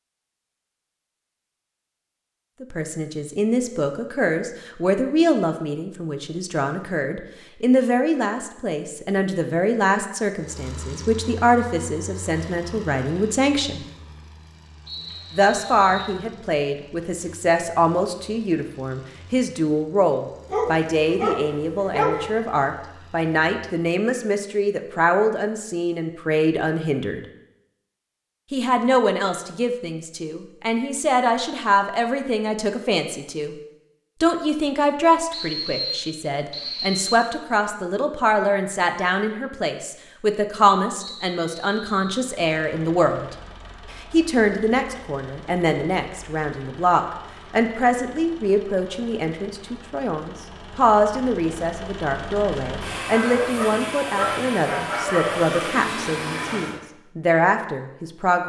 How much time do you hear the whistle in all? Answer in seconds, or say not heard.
4 s.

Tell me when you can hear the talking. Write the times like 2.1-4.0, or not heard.
2.6-13.8, 15.3-27.2, 28.5-33.5, 34.2-58.4.